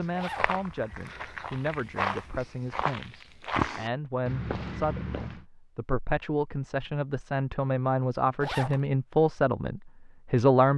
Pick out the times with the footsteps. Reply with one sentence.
The footsteps can be heard from 0.0 to 5.5 s.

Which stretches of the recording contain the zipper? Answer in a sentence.
You can hear the zipper from 0.1 to 0.6 s and from 8.4 to 8.8 s.